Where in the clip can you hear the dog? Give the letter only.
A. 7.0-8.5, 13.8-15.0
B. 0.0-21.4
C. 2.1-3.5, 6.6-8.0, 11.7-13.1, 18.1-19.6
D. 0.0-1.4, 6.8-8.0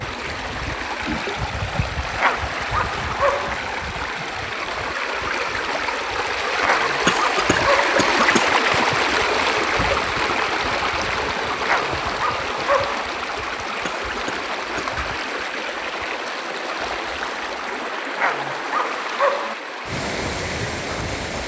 C.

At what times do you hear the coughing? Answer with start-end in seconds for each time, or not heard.
7.0-8.5, 13.8-15.0.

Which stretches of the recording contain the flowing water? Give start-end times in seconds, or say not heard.
0.0-21.4.